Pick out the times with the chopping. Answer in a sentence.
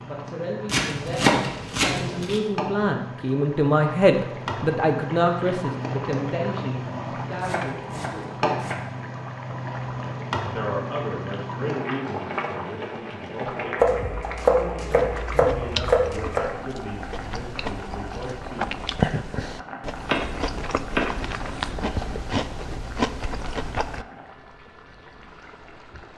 You can hear the chopping from 0.7 to 2.4 s, from 7.3 to 8.8 s, from 13.8 to 16.4 s and from 20.1 to 21.2 s.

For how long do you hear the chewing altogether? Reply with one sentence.
You can hear the chewing for 9 seconds altogether.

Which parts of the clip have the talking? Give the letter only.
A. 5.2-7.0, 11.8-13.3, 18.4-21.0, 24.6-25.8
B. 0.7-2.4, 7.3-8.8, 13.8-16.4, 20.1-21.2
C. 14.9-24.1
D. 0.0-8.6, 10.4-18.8
D.